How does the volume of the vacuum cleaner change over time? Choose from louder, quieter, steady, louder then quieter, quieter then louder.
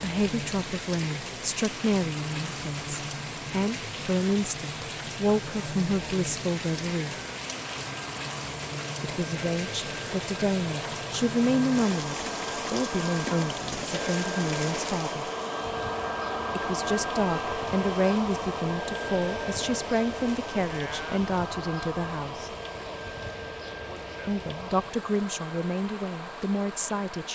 louder then quieter.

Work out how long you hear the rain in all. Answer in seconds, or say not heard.
27 s.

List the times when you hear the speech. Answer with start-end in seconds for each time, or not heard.
0.0-7.2, 9.0-15.3, 16.6-22.5, 24.2-27.3.